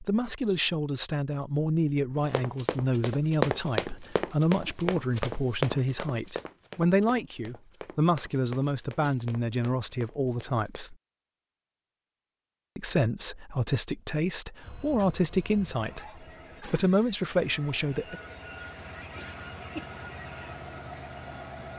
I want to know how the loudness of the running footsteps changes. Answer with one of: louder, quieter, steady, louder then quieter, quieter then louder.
quieter.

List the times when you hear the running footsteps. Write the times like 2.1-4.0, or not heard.
2.2-10.8.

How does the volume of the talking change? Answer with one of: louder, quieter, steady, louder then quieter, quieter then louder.
steady.